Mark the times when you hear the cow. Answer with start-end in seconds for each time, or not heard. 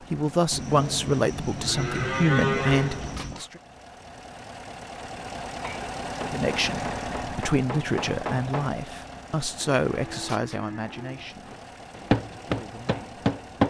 0.5-3.5, 9.7-11.3.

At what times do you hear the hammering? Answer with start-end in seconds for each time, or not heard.
5.5-8.8, 11.4-13.6.